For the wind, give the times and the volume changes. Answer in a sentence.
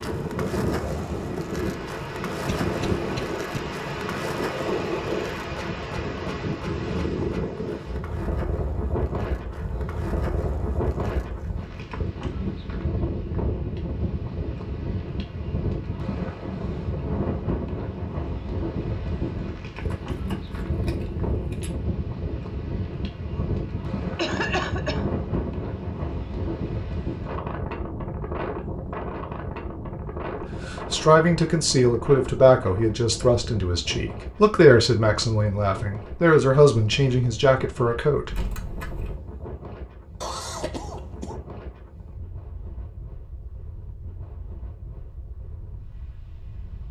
You can hear the wind from 0.0 to 46.8 s, getting quieter.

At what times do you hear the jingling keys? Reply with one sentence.
You can hear the jingling keys from 0.7 to 1.4 s, from 19.8 to 21.7 s and from 38.3 to 39.2 s.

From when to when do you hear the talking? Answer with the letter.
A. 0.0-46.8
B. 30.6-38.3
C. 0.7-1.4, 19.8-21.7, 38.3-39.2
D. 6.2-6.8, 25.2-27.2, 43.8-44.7
B.